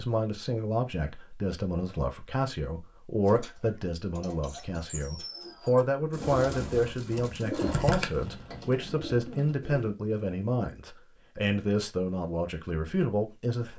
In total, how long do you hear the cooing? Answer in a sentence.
You can hear the cooing for 7 seconds altogether.